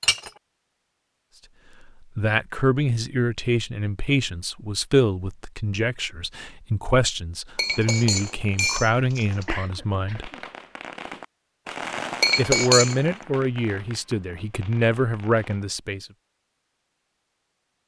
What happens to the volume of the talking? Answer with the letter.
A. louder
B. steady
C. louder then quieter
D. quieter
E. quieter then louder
B.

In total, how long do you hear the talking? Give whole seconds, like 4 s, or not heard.
12 s.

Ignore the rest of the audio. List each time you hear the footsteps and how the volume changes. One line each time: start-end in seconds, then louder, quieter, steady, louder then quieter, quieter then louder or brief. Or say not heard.
not heard.